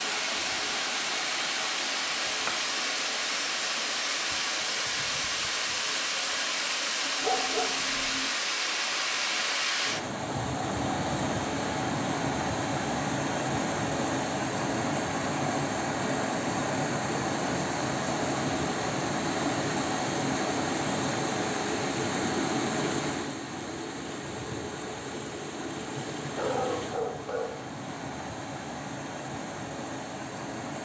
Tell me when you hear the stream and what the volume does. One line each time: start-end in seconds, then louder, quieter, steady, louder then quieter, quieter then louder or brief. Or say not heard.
0.0-30.8 quieter.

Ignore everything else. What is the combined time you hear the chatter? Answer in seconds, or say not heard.
not heard.